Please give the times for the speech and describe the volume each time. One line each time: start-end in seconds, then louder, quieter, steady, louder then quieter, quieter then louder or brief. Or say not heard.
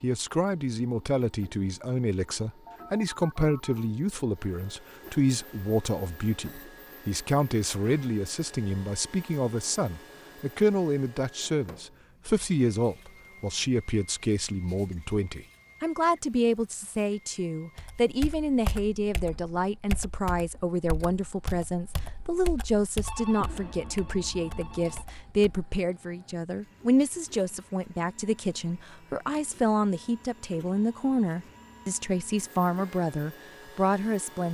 0.0-34.4 steady.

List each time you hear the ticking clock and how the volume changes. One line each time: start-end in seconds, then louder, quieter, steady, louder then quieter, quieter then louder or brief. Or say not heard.
not heard.